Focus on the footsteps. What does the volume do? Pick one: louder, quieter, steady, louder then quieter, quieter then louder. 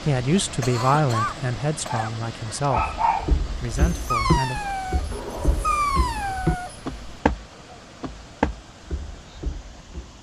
quieter then louder.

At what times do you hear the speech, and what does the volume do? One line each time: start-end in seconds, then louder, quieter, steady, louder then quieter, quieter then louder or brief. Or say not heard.
0.1-4.6 quieter.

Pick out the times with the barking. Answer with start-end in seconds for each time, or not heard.
1.9-7.2.